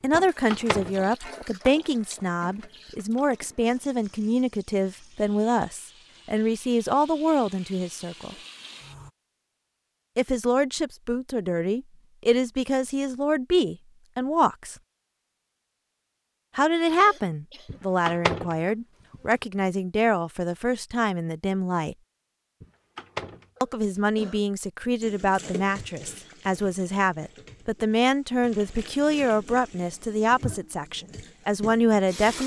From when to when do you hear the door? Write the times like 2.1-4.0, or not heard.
0.1-1.0, 17.6-19.4, 22.6-23.4.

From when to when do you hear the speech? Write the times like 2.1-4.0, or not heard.
0.0-8.3, 10.2-14.8, 16.6-21.9, 23.6-32.4.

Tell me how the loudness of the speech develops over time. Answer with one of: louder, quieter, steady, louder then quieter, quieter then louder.
steady.